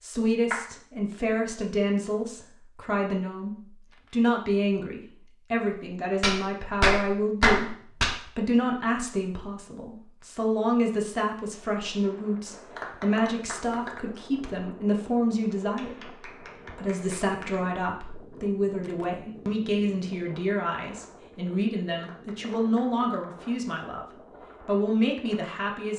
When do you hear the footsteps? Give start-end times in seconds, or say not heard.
not heard.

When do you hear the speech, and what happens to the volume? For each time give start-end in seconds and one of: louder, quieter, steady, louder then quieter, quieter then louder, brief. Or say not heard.
0.0-25.9 steady.